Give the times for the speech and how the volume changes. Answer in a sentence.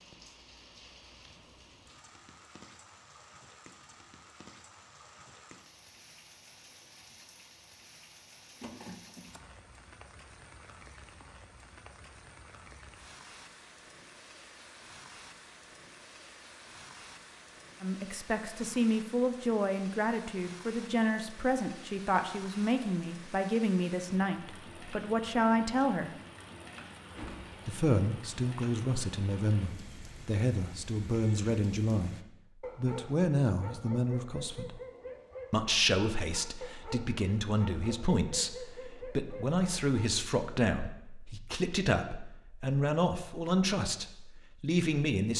The speech can be heard from 17.8 to 26.1 s, at a steady volume; from 27.6 to 32.1 s, getting quieter then louder; briefly from 32.8 to 34.8 s; and from 35.5 to 45.3 s, at a steady volume.